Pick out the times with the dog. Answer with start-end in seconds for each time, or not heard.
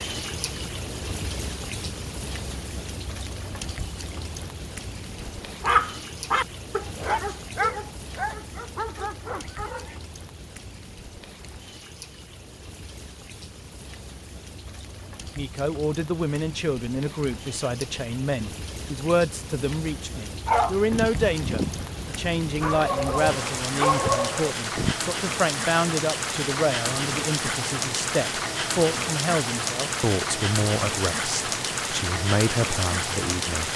5.2-10.1, 20.4-24.9.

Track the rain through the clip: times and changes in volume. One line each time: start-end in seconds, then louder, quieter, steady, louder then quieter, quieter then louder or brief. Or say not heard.
0.0-33.7 quieter then louder.